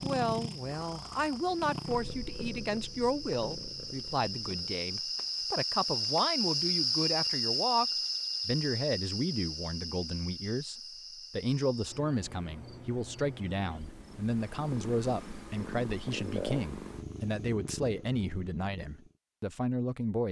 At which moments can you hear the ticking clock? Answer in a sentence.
You can't hear the ticking clock here.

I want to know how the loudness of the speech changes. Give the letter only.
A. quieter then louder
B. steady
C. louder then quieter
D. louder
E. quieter
B.